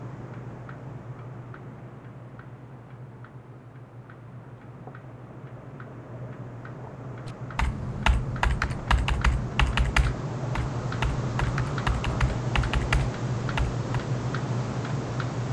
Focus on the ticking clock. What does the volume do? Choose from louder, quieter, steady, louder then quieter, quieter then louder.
louder.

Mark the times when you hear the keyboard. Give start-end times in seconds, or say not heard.
7.5-13.8.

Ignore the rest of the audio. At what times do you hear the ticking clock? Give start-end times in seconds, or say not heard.
0.0-15.4.